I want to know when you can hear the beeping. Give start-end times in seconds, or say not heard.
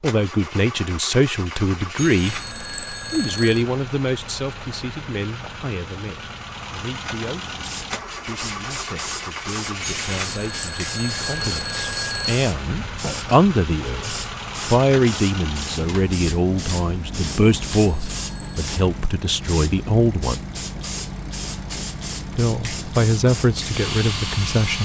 1.9-3.6, 9.8-12.5, 17.8-18.7.